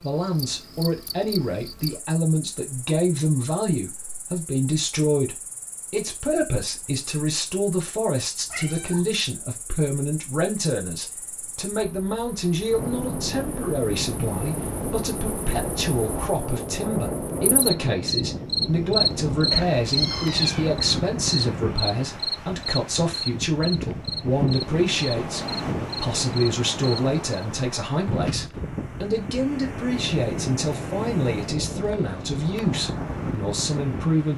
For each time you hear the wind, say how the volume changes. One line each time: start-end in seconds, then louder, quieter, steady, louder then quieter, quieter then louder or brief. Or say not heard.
12.7-34.3 steady.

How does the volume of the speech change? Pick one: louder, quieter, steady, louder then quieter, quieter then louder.
steady.